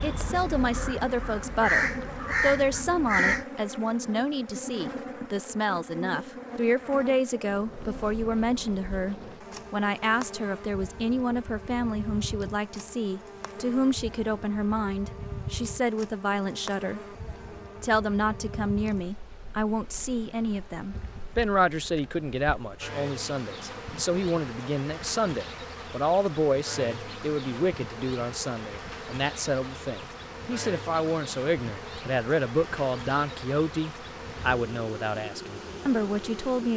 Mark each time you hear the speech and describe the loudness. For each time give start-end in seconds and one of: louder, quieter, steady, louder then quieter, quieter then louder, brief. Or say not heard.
0.0-17.0 steady
17.8-36.7 steady.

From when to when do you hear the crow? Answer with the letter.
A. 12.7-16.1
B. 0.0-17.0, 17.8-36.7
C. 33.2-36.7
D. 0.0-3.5
D.